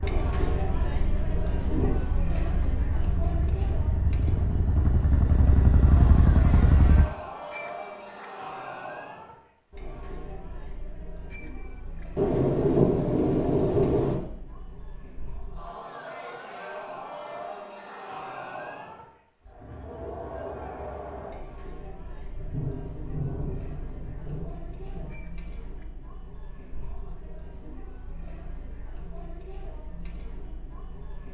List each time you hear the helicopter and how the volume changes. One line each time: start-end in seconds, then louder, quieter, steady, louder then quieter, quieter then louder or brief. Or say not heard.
0.0-7.1 louder.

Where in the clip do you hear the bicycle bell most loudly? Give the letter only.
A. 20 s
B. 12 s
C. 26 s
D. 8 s
D.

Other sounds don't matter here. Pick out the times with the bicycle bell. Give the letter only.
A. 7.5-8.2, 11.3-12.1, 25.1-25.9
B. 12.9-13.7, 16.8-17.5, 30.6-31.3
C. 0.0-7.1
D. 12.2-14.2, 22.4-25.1
A.